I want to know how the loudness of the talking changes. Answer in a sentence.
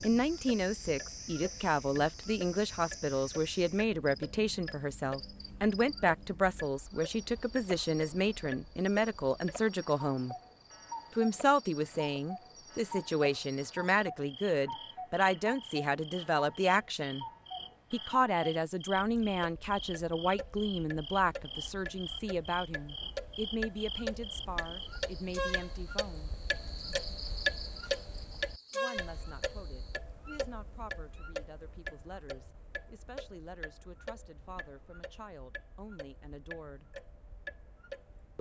The loudness of the talking goes down.